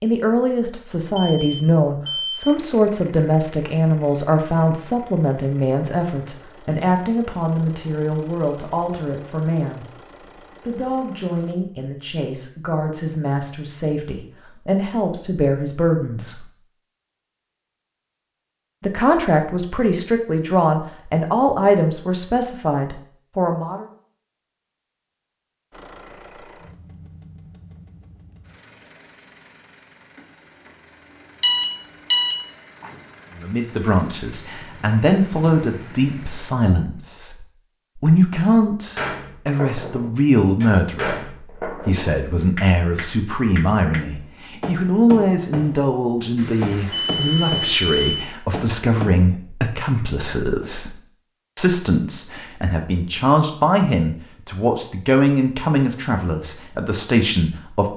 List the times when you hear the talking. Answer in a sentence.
You can hear the talking from 0.0 to 9.8 s, from 10.7 to 16.5 s, from 18.8 to 23.9 s and from 33.4 to 57.9 s.